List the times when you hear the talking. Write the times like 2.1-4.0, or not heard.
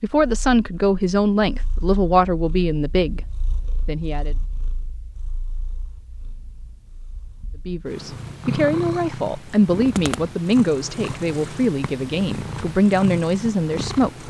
0.0-4.3, 7.7-14.2.